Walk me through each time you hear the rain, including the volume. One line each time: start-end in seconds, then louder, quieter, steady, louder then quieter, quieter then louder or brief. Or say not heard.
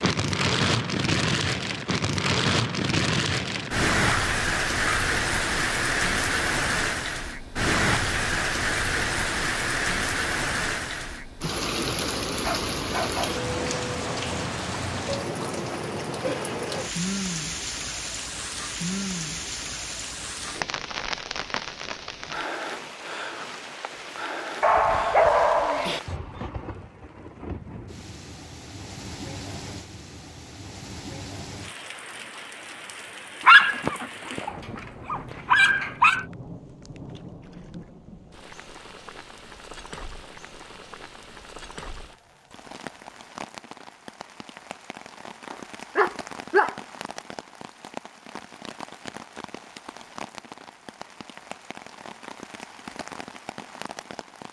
0.0-54.4 quieter.